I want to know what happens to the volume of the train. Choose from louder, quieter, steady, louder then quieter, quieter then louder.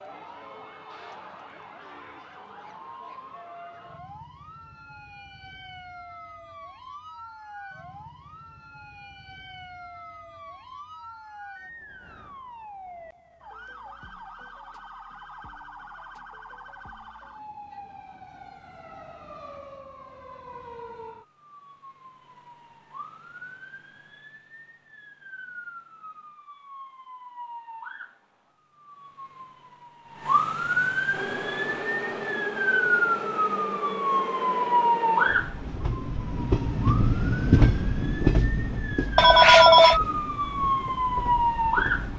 louder then quieter.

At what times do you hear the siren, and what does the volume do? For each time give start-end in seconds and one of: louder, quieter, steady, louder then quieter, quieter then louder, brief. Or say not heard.
0.0-42.1 louder.